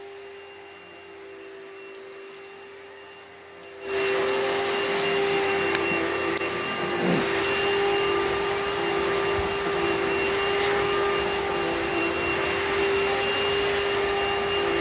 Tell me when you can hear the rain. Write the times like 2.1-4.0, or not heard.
4.8-14.7.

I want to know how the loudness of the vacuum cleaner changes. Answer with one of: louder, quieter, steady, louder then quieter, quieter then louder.
louder.